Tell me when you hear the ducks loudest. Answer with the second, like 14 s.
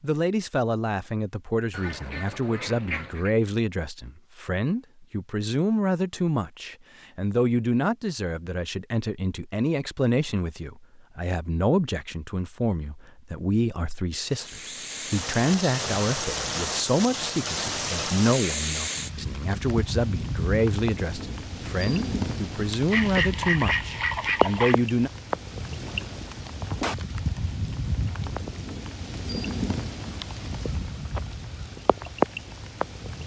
24 s.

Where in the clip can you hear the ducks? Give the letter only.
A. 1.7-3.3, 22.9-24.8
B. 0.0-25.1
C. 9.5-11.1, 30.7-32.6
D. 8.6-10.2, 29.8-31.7
A.